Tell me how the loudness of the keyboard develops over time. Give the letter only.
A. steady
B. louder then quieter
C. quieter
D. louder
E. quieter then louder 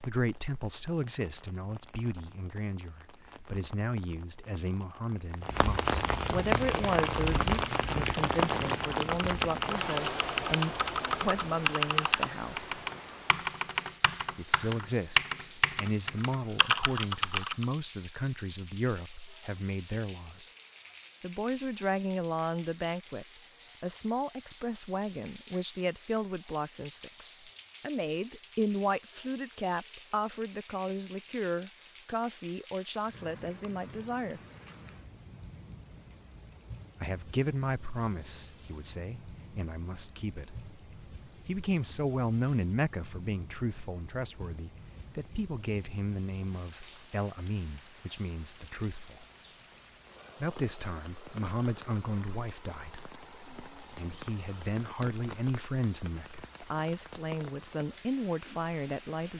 D.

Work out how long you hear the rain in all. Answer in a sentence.
The rain can be heard for 59 seconds in total.